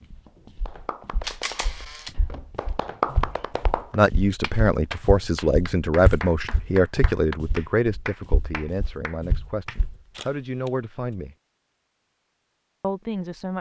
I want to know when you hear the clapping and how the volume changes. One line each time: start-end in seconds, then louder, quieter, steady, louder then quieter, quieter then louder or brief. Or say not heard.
0.7-9.8 louder then quieter.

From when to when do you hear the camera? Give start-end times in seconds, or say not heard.
1.2-2.1, 6.0-6.6, 10.1-10.7.